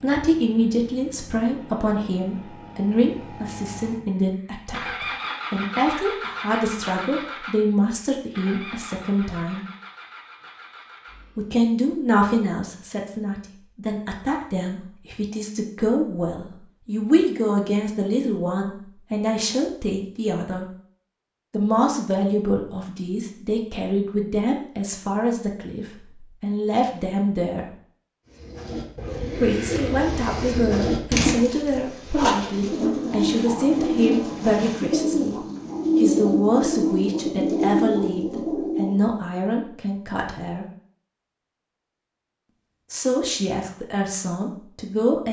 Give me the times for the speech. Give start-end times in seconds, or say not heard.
0.0-9.7, 11.3-20.6, 21.5-27.6, 29.4-40.6, 42.9-45.2.